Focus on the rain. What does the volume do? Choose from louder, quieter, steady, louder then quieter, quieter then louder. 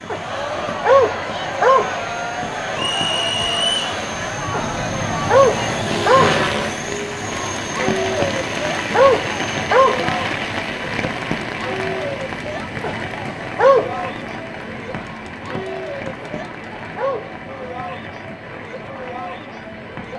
louder then quieter.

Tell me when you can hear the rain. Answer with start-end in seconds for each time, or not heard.
0.0-20.1.